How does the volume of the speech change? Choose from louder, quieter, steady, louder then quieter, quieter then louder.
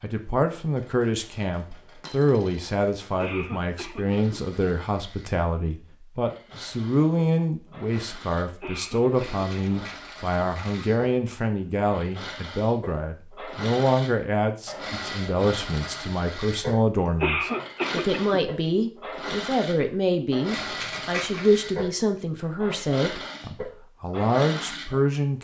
steady.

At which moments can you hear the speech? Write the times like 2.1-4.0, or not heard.
0.0-25.3.